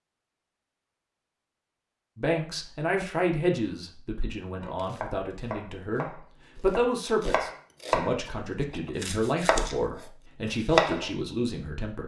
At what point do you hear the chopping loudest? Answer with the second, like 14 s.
11 s.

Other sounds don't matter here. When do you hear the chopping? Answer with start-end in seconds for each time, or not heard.
4.6-11.1.